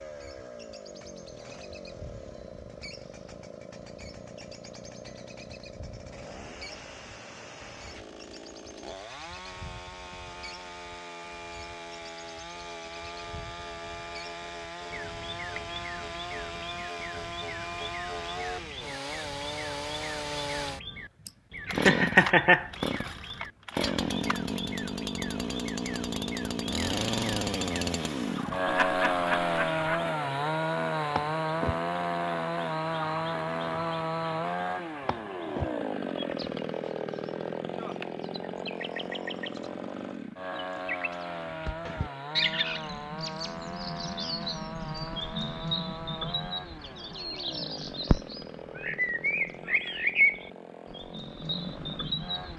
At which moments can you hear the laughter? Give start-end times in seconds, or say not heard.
21.2-22.7, 28.6-30.1.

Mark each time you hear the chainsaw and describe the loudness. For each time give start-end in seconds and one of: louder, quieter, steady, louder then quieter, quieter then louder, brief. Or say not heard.
0.0-52.5 louder then quieter.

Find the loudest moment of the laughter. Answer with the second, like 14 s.
22 s.